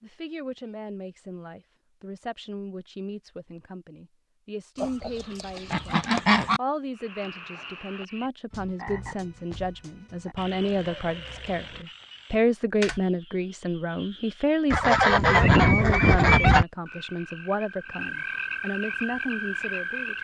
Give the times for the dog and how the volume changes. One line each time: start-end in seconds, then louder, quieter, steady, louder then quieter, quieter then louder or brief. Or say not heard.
not heard.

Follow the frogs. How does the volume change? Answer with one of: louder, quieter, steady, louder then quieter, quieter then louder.
louder.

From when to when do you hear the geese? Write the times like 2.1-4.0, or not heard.
4.8-6.6, 14.7-16.6.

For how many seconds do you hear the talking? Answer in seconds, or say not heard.
20 s.